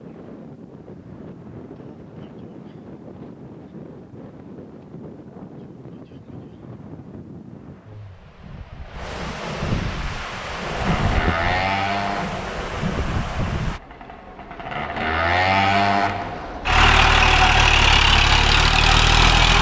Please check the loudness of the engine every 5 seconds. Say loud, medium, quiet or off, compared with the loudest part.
off, off, medium, loud.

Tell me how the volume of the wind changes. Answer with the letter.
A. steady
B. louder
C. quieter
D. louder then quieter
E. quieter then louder
B.